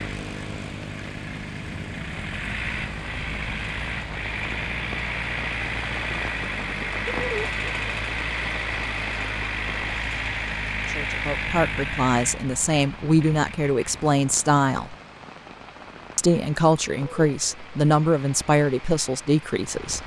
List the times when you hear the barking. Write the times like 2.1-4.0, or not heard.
not heard.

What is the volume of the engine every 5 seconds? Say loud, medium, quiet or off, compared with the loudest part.
loud, loud, loud, quiet.